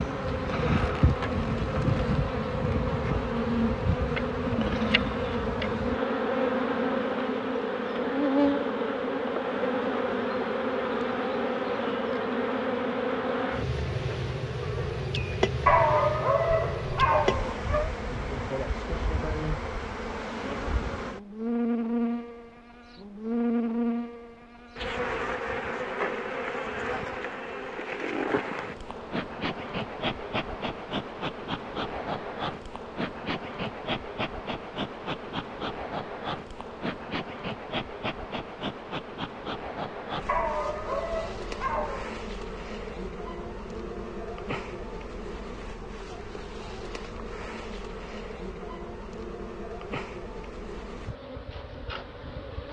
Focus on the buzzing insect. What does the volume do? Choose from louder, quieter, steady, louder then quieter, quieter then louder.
quieter.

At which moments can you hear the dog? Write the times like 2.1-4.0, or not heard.
15.7-17.9, 40.2-42.1.